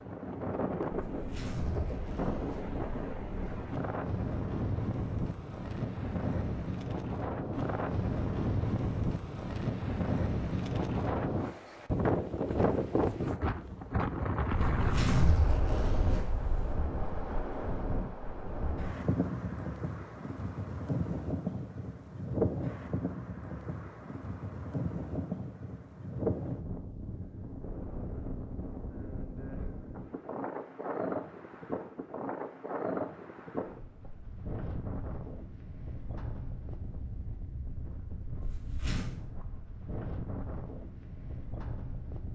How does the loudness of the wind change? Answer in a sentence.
The volume of the wind goes down.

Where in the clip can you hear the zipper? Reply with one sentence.
You can hear the zipper from 0.9 to 3.7 s, from 14.5 to 16.9 s and from 38.4 to 39.1 s.